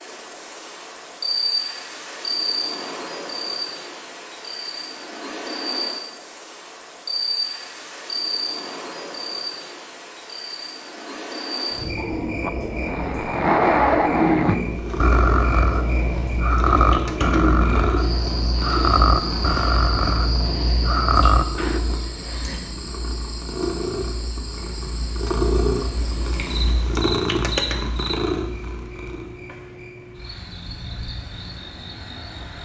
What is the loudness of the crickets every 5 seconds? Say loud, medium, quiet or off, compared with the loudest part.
loud, loud, loud, loud, medium, medium, medium.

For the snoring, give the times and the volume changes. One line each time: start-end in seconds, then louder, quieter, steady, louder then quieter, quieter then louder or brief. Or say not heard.
11.9-21.8 steady.